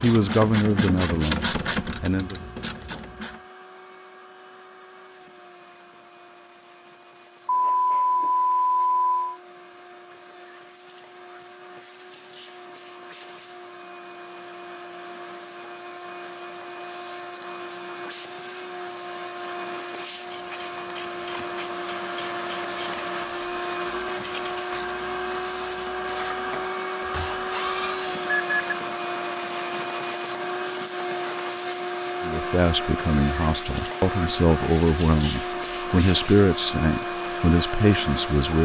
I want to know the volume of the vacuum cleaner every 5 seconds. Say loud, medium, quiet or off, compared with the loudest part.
quiet, quiet, quiet, medium, loud, loud, loud, loud.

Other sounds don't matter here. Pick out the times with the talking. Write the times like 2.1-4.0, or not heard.
0.0-2.4, 32.2-38.6.